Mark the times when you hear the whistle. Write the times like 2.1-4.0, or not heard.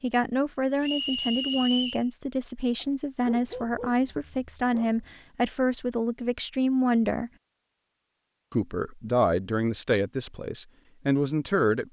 0.8-2.0.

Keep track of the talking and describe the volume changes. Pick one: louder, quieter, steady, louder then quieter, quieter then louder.
steady.